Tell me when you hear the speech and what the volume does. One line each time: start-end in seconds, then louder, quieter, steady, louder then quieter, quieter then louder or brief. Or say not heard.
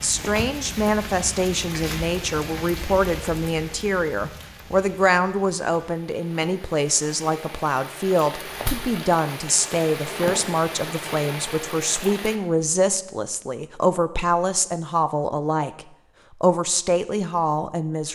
0.0-18.1 steady.